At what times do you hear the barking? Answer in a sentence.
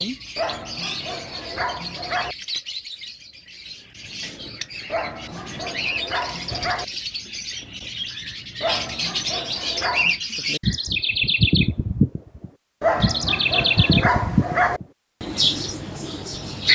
The barking can be heard from 0.3 to 2.4 s, from 4.9 to 6.8 s, from 8.6 to 10.2 s and from 12.8 to 14.8 s.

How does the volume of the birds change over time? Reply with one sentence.
The volume of the birds goes up.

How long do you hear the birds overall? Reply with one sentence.
The birds can be heard for 17 seconds in total.